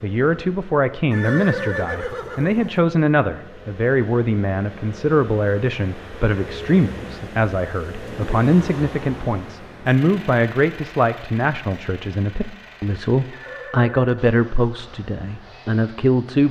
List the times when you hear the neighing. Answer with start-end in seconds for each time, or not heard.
1.1-2.8, 13.3-14.2.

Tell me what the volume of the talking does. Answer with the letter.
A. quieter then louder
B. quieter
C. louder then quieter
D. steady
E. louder
D.